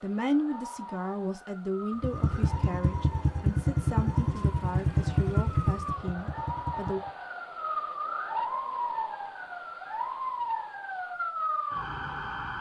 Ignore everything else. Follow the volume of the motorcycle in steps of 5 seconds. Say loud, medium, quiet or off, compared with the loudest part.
loud, loud, off.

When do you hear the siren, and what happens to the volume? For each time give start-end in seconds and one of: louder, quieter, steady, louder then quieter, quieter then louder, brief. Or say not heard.
0.0-12.5 louder.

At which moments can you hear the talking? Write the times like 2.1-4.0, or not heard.
0.0-7.0.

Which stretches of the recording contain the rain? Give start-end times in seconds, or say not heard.
not heard.